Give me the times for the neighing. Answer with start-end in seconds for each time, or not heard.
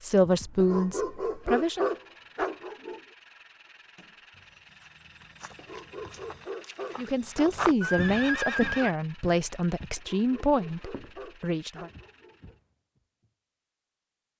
0.2-1.5, 7.8-8.9.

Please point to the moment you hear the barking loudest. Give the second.
2 s.